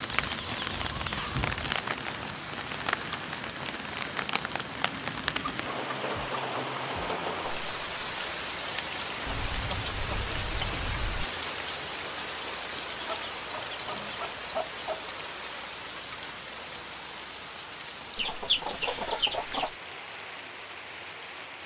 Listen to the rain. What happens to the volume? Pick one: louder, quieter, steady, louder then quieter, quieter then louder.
quieter.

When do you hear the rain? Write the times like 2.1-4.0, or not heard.
0.0-21.6.